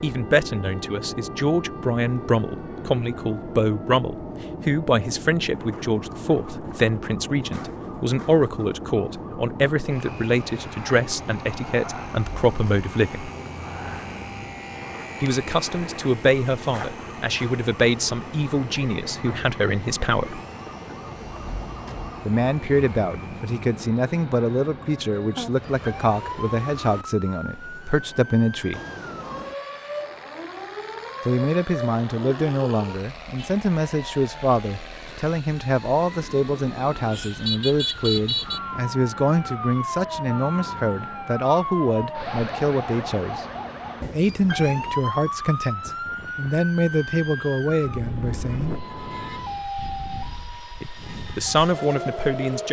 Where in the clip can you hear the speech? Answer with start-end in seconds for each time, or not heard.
0.0-13.3, 15.2-20.4, 22.2-28.8, 31.2-43.4, 44.1-48.8, 50.8-52.6.